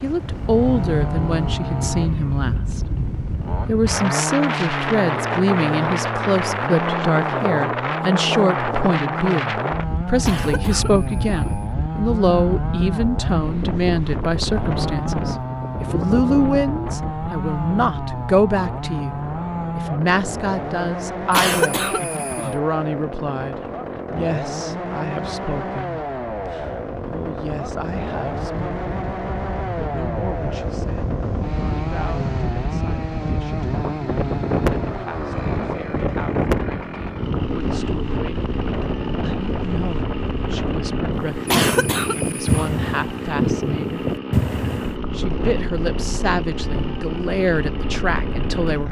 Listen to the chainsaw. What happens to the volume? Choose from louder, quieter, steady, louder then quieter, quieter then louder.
steady.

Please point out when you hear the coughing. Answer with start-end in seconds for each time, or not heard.
10.2-11.7, 21.3-22.6, 41.5-42.7.